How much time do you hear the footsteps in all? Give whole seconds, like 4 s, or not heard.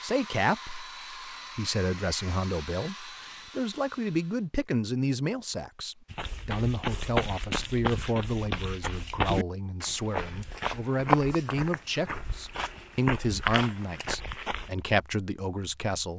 9 s.